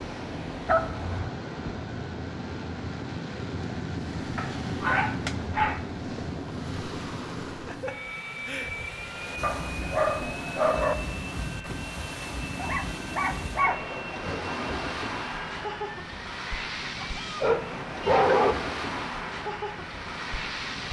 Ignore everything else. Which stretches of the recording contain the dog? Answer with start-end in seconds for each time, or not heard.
0.7-1.3, 4.3-6.4, 9.4-10.9, 12.6-14.1, 17.0-18.6.